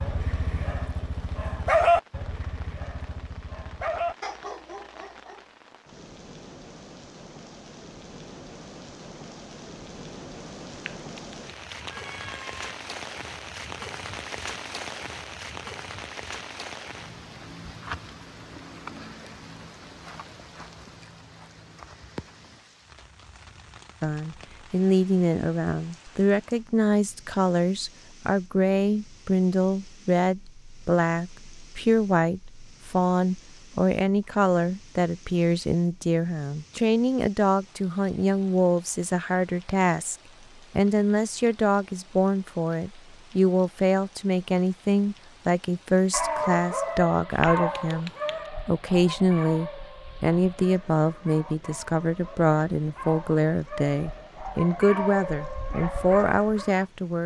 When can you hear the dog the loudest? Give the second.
2 s.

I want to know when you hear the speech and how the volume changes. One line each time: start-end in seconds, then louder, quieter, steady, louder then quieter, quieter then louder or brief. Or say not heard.
24.0-57.2 steady.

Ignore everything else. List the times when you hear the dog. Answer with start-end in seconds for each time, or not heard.
0.0-5.5, 46.1-56.9.